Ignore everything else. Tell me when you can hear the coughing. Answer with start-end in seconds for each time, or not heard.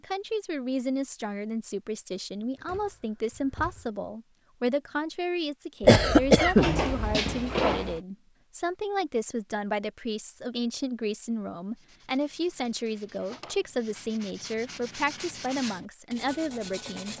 5.8-7.2.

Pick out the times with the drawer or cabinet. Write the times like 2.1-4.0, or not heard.
2.5-3.9, 6.5-8.0, 13.1-13.6.